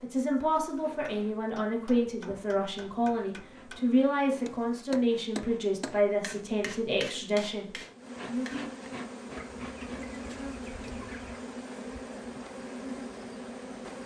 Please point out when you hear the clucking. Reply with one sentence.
You can hear the clucking from 9.3 to 11.4 s.